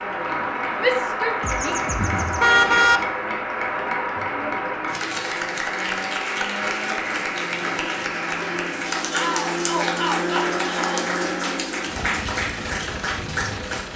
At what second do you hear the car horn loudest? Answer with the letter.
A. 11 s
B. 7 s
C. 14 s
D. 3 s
D.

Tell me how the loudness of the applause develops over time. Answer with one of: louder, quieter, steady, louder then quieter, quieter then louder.
steady.